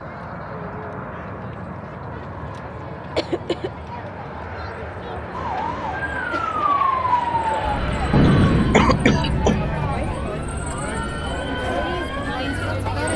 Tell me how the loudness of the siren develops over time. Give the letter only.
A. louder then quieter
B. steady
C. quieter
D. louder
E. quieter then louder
C.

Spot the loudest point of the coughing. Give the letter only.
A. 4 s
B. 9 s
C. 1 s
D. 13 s
B.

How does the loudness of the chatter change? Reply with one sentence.
The volume of the chatter goes up.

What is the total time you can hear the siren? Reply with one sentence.
You can hear the siren for 8 seconds altogether.